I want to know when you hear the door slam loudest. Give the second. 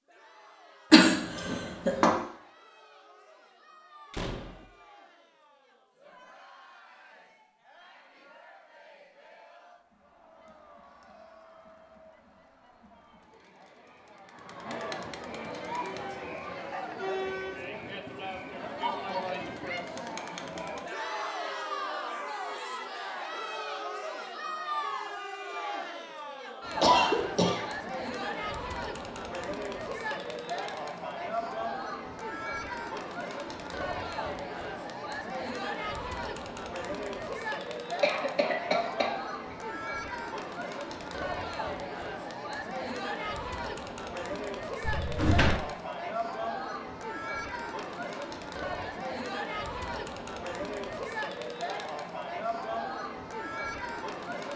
45 s.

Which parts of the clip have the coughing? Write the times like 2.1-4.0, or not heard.
0.9-2.1, 26.8-27.6, 38.0-39.5.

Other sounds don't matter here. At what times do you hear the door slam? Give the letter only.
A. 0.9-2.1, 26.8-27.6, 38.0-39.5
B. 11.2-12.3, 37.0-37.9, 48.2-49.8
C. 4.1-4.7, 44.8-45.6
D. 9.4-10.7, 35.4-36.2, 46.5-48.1
C.